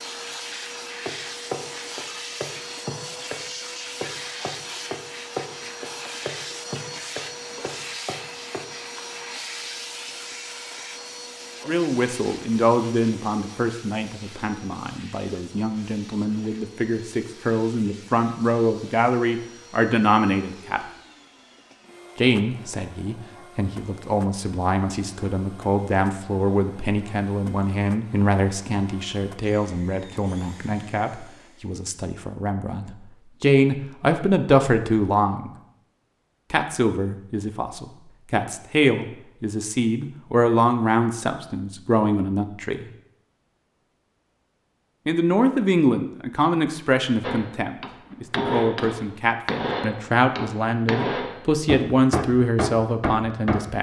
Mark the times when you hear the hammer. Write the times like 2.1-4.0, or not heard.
1.1-8.7, 47.2-53.6.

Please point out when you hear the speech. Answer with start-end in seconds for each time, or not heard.
11.7-20.8, 22.1-35.5, 36.5-42.9, 45.0-53.7.